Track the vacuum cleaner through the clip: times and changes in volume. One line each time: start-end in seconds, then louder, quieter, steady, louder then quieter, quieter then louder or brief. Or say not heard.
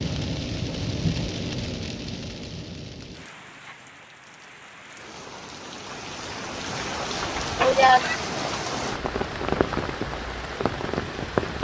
not heard.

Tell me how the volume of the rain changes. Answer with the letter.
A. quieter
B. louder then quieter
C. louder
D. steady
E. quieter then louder
E.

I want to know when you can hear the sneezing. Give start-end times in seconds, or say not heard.
7.5-8.2.